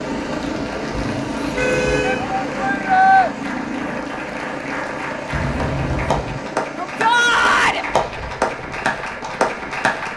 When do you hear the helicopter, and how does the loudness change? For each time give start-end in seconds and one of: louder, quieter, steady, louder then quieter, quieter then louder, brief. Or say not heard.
0.0-10.1 quieter.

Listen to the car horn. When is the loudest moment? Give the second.
2 s.